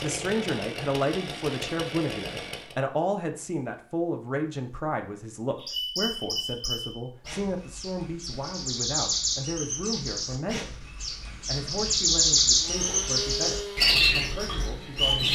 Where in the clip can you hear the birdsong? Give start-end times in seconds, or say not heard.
5.6-15.3.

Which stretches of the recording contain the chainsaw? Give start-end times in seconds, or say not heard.
0.0-2.8, 12.6-15.1.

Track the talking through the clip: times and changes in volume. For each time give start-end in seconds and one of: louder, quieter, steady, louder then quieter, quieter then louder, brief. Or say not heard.
0.0-15.3 quieter.